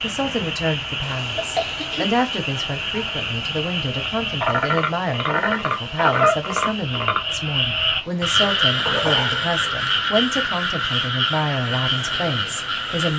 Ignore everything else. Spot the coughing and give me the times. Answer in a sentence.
The coughing can be heard from 1.4 to 2.1 s and from 8.8 to 9.4 s.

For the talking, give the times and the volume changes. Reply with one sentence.
You can hear the talking from 0.0 to 13.1 s, at a steady volume.